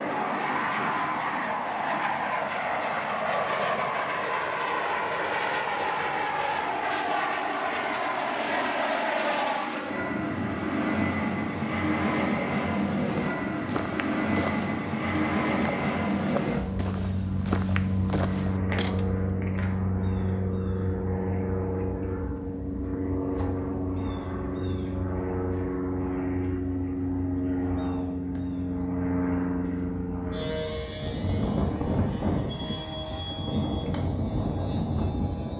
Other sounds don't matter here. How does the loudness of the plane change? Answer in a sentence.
The volume of the plane stays about the same.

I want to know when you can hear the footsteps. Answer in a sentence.
The footsteps can be heard from 13.1 to 19.1 s.